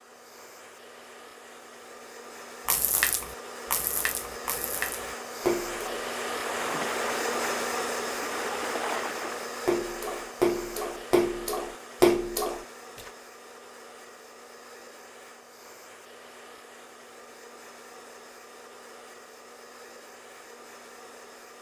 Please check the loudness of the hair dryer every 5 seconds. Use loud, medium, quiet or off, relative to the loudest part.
medium, loud, medium, quiet, quiet.